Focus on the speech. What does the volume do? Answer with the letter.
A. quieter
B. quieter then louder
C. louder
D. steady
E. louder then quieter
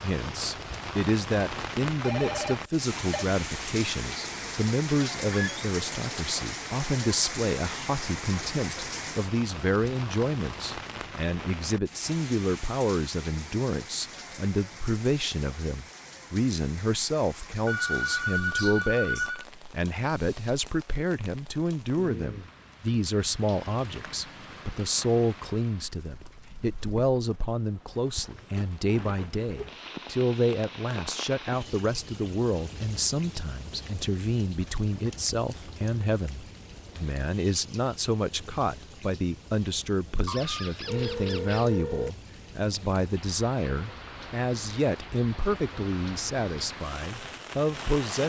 D.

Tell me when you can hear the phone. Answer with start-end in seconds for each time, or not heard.
2.0-3.2, 17.6-19.4, 40.9-42.1.